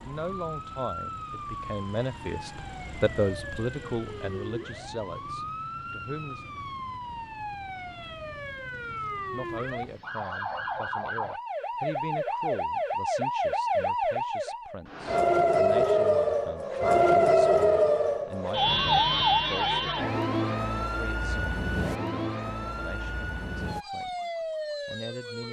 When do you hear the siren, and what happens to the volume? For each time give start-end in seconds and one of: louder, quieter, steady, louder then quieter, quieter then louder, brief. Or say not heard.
0.0-25.4 louder then quieter.